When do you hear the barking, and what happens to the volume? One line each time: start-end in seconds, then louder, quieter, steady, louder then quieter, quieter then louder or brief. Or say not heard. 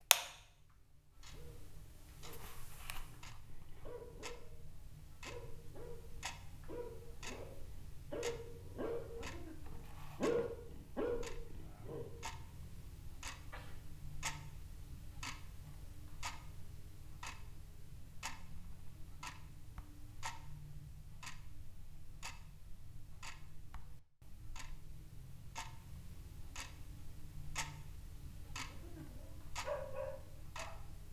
1.3-12.8 louder
28.4-31.0 brief.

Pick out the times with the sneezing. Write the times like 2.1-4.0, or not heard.
13.3-13.8.